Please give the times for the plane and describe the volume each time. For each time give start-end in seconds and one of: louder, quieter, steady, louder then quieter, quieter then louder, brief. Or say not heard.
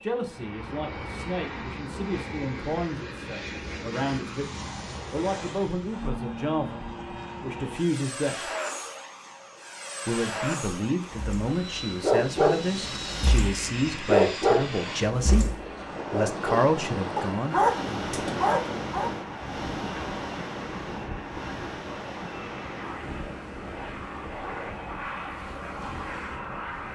0.0-26.8 steady.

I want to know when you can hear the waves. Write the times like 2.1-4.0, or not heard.
11.0-26.8.